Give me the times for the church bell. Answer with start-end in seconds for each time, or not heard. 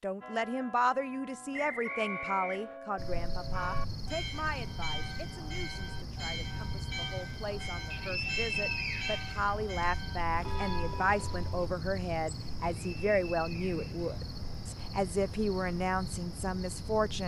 0.2-11.7.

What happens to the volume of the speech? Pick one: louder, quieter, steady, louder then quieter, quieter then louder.
quieter then louder.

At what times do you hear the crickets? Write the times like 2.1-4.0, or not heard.
3.0-17.2.